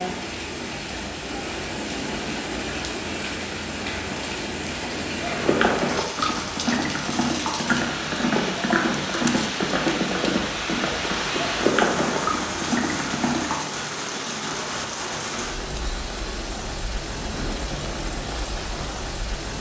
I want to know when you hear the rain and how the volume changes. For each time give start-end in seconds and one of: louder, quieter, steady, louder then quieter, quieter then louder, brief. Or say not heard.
0.0-19.5 steady.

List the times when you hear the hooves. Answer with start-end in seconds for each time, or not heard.
5.2-13.6.